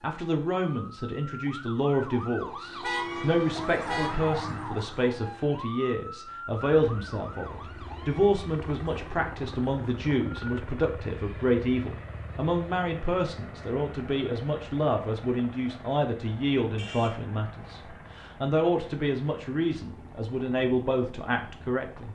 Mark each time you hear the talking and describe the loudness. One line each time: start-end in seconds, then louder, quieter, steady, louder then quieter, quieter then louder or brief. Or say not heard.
0.0-22.1 steady.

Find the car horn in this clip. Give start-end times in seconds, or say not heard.
2.8-4.2, 16.8-17.9.